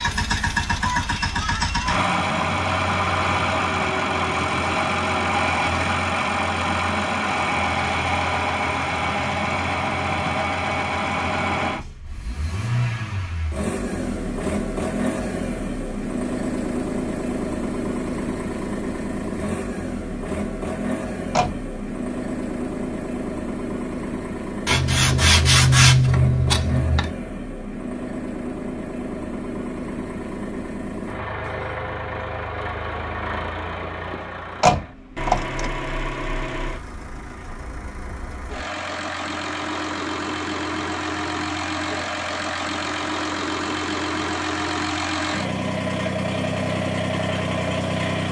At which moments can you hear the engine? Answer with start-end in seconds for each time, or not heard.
0.0-48.2.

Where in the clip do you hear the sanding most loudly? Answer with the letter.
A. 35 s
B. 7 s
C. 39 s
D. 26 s
D.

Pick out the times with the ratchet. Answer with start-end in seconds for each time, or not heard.
not heard.